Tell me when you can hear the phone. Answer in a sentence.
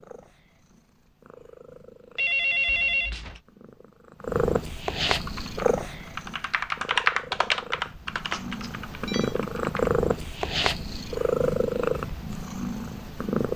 The phone can be heard from 2.1 to 3.4 s and from 8.3 to 9.3 s.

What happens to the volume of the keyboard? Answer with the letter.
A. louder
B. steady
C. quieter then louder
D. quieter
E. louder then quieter
E.